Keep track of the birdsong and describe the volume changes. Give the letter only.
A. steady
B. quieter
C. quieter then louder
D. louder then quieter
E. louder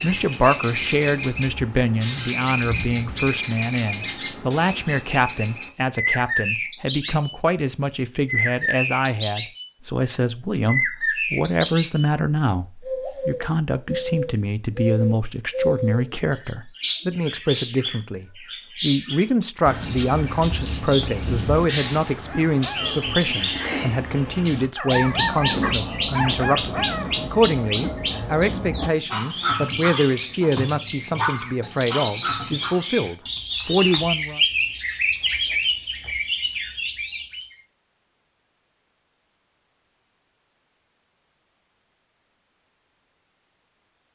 A.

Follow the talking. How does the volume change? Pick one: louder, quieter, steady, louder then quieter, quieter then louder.
steady.